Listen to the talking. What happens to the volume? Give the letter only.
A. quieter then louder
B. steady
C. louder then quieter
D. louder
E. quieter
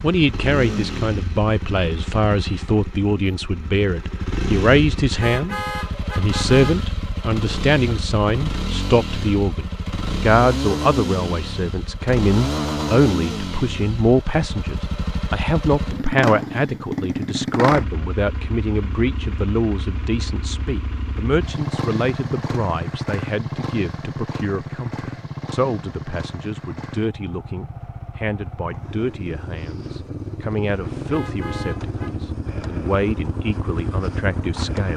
E.